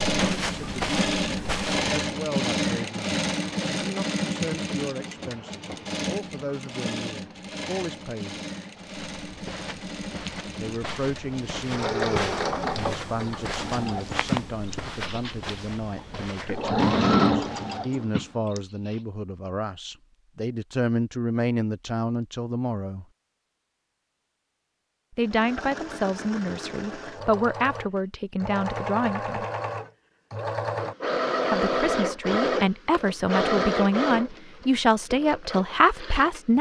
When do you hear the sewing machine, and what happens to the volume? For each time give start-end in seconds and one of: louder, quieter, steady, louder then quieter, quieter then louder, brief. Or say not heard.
0.0-18.9 quieter then louder
25.2-36.5 louder then quieter.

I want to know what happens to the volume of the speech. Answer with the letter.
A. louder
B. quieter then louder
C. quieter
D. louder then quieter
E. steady
A.